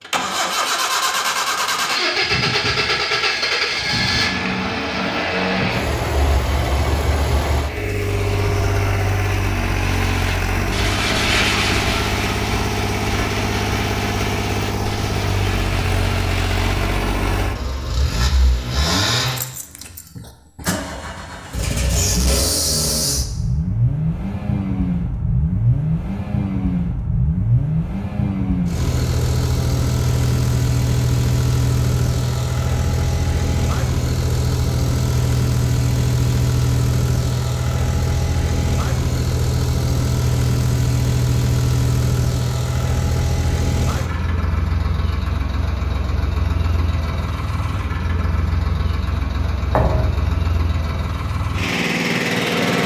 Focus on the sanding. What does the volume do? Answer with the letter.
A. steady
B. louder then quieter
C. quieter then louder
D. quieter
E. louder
D.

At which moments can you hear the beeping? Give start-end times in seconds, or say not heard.
not heard.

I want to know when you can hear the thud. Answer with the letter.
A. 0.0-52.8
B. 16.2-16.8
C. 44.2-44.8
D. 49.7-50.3
D.